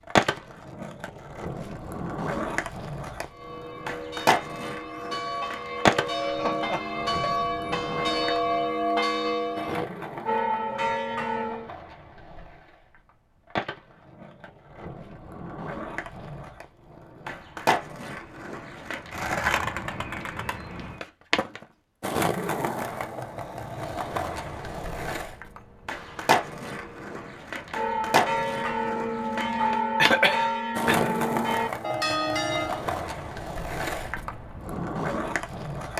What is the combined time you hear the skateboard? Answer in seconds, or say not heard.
36 s.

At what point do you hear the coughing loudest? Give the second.
30 s.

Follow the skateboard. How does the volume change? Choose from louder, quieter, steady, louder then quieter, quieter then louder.
quieter then louder.